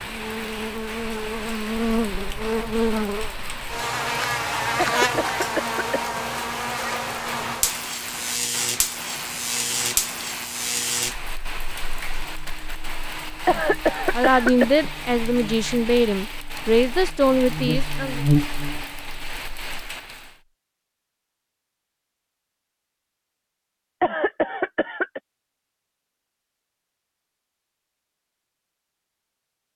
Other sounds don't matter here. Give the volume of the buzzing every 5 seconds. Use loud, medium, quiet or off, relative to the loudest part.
loud, loud, medium, loud, off, off.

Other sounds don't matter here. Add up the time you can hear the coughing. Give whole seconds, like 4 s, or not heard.
4 s.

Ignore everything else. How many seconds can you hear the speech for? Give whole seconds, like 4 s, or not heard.
4 s.